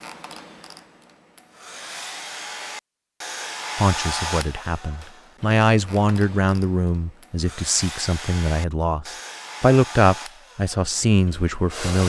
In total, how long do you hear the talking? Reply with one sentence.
The talking can be heard for 8 seconds in total.